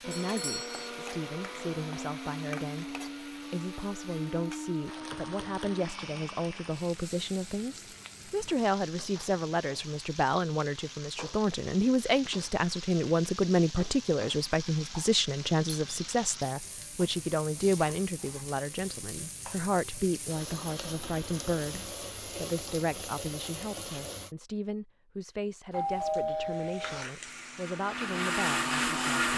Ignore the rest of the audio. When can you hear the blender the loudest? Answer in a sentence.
The volume of the blender peaks at 29 seconds.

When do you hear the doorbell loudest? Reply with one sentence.
The volume of the doorbell peaks at 26 seconds.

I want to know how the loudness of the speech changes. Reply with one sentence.
The loudness of the speech goes up, then down.